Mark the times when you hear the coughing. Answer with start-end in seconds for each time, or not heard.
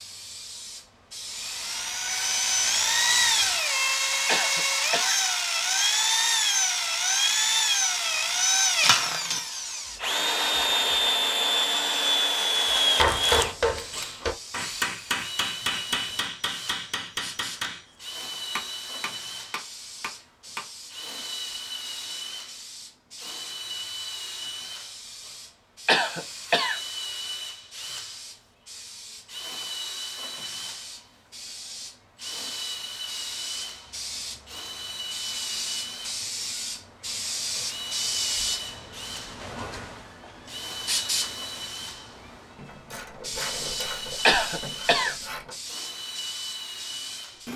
4.2-5.2, 25.9-26.8, 44.2-45.1.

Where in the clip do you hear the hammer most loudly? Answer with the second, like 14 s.
13 s.